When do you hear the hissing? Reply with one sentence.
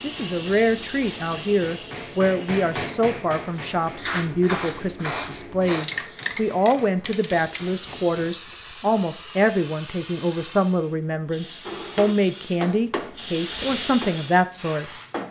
You can hear the hissing from 0.0 to 15.2 s.